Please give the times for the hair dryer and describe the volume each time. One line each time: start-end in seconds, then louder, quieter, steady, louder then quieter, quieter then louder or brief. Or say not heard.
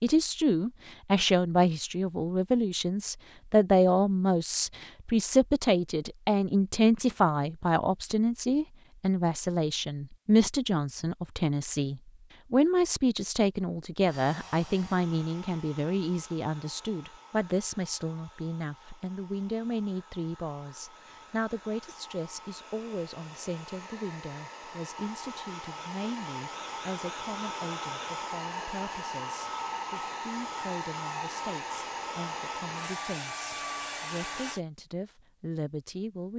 14.1-34.6 louder.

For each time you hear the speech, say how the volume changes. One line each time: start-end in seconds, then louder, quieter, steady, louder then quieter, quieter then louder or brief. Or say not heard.
0.0-36.3 quieter.